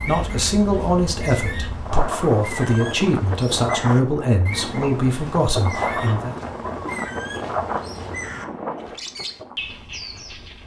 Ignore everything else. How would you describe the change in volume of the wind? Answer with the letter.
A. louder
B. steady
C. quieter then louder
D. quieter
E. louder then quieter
D.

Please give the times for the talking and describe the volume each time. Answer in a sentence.
The talking can be heard from 0.1 to 6.3 s, at a steady volume.